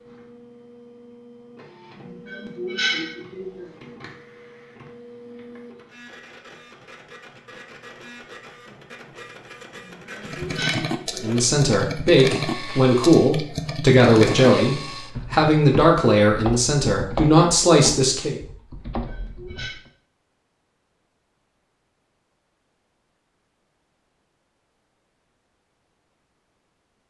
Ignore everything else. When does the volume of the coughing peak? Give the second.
3 s.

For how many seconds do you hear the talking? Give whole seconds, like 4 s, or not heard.
7 s.